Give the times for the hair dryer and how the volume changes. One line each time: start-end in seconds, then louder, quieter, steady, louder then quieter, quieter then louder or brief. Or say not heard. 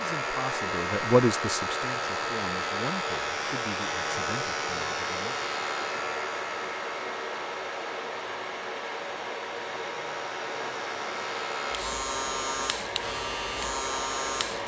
0.0-14.6 steady.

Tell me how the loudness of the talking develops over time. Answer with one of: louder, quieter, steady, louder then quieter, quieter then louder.
quieter.